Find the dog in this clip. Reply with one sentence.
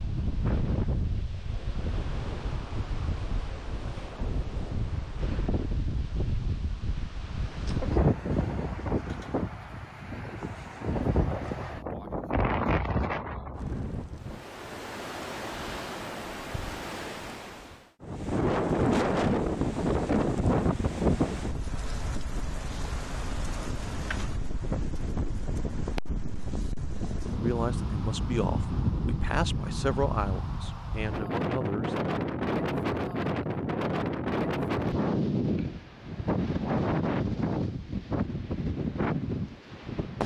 The dog can't be heard in this clip.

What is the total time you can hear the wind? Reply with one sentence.
You can hear the wind for 40 seconds altogether.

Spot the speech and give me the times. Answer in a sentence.
The speech can be heard from 27.4 to 31.9 s.